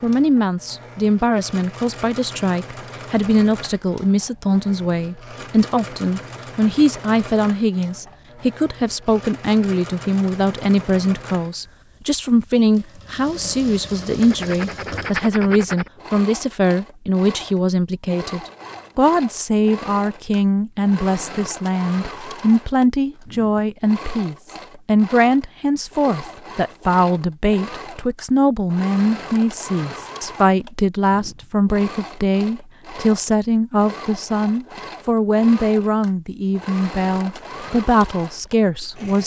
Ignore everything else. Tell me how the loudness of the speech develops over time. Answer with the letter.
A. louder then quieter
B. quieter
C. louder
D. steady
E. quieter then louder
D.